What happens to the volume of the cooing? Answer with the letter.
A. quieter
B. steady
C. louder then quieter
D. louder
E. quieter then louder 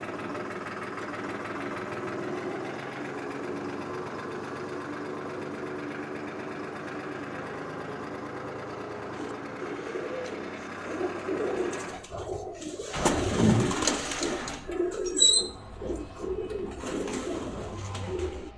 C.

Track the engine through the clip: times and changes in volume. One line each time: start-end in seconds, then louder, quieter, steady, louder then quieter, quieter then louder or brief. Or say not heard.
0.0-18.5 quieter.